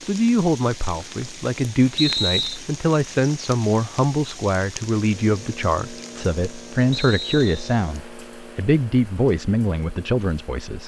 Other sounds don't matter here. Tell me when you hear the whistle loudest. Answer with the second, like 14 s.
2 s.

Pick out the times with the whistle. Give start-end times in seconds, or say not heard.
1.9-2.6, 6.9-7.8.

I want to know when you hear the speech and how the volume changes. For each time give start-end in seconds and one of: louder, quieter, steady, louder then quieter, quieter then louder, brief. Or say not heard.
0.0-10.8 steady.